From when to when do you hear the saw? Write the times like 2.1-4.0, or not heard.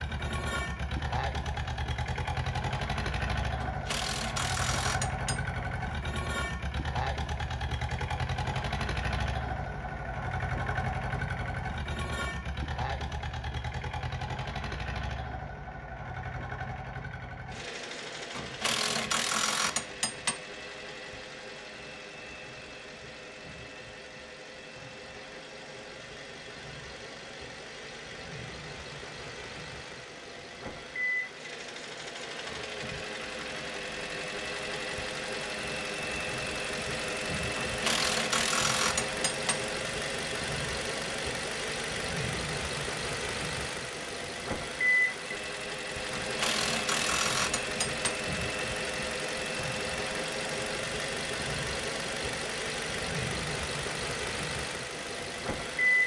not heard.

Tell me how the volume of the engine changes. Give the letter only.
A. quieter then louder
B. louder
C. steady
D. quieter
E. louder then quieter
A.